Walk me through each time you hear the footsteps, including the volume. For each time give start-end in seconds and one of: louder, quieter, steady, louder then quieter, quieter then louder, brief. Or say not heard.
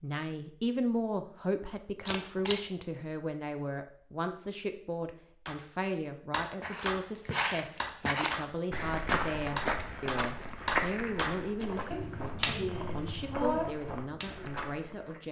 6.6-15.2 quieter.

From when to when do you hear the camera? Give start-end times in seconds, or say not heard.
2.0-2.6.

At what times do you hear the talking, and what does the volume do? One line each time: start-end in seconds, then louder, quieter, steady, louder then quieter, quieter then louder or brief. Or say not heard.
0.0-15.2 quieter.